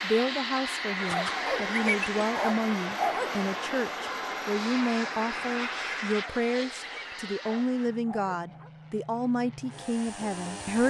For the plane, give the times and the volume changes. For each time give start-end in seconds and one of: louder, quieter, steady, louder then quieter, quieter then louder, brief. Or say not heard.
0.0-10.8 quieter.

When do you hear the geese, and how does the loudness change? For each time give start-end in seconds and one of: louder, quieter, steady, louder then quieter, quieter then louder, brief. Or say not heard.
not heard.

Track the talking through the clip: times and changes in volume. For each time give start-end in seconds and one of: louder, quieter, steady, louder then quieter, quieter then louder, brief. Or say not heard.
0.0-10.8 steady.